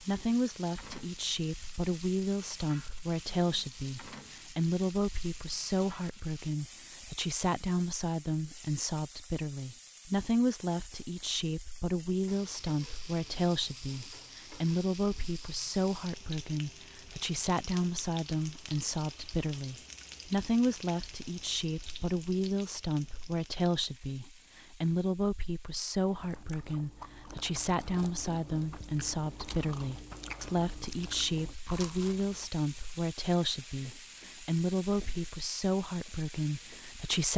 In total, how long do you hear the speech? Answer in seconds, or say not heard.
37 s.